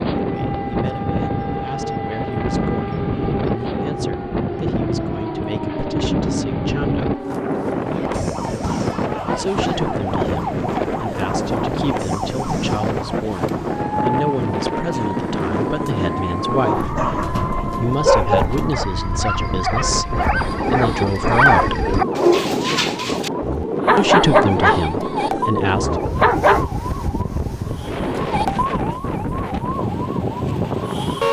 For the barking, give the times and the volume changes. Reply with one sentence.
The barking can be heard from 16.6 to 26.6 s, getting quieter then louder.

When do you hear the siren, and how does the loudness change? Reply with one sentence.
You can hear the siren from 0.1 to 31.2 s, at a steady volume.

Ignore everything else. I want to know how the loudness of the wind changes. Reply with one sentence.
The loudness of the wind stays about the same.